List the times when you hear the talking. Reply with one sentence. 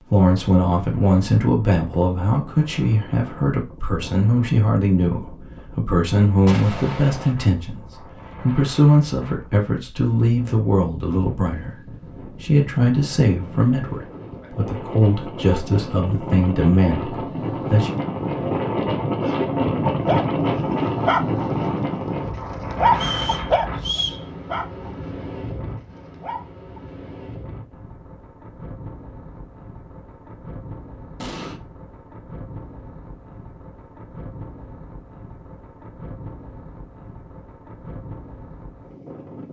The talking can be heard from 0.1 to 17.9 s.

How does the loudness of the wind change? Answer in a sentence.
The loudness of the wind goes up, then down.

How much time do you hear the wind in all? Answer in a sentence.
You can hear the wind for 39 seconds altogether.